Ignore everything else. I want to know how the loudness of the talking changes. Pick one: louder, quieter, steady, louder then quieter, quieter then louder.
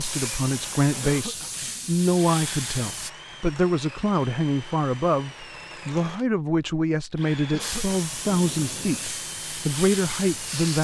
steady.